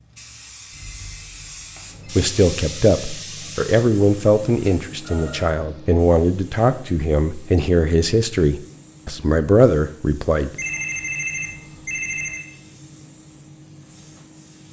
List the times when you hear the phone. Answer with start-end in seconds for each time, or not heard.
0.7-2.0, 5.0-5.5, 10.6-12.5.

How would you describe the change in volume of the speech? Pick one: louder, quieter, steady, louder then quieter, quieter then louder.
steady.